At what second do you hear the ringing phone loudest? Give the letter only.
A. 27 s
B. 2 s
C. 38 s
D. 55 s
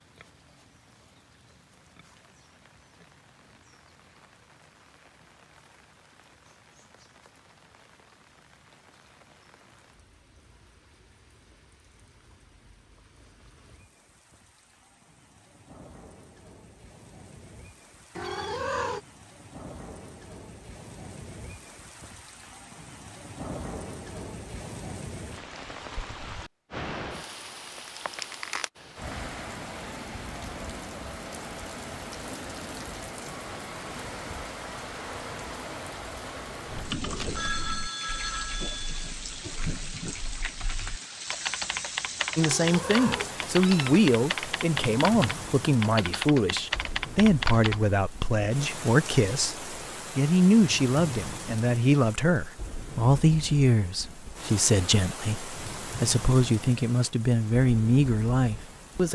C.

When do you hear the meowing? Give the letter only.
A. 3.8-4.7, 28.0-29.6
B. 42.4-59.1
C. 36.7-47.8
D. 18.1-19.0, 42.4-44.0
D.